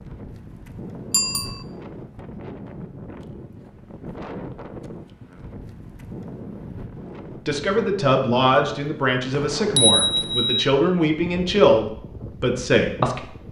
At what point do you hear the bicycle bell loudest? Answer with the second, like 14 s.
10 s.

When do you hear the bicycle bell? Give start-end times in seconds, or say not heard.
1.1-1.6, 9.6-10.7.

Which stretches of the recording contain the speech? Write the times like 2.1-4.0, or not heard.
7.5-13.3.